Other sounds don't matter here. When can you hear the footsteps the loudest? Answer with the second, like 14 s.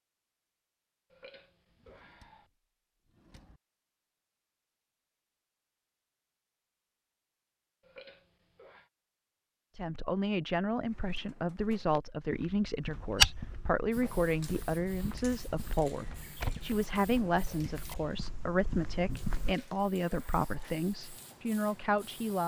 13 s.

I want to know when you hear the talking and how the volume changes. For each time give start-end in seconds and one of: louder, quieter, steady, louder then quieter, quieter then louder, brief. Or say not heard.
9.8-22.4 steady.